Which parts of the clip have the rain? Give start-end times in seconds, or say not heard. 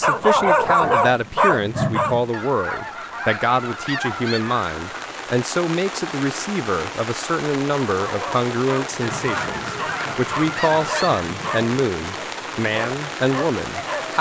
0.0-14.1.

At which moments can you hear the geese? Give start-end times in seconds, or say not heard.
2.3-5.2, 9.0-11.2.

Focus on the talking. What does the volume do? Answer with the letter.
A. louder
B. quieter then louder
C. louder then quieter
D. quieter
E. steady
E.